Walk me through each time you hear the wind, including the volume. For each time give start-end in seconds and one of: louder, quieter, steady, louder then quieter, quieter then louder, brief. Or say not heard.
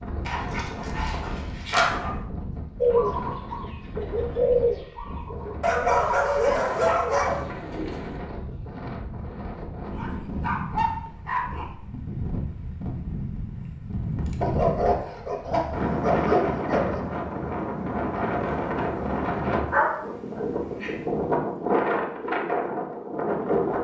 0.0-23.8 louder.